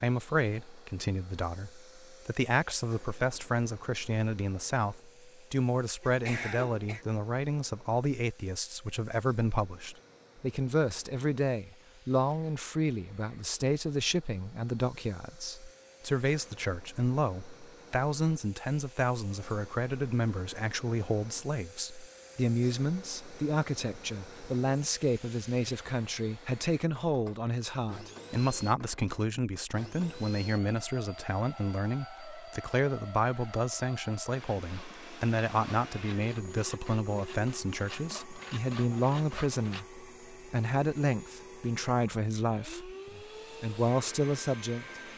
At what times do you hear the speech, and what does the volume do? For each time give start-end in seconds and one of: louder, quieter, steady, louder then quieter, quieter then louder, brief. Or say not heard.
0.0-45.0 steady.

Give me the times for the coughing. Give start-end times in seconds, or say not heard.
6.0-7.0.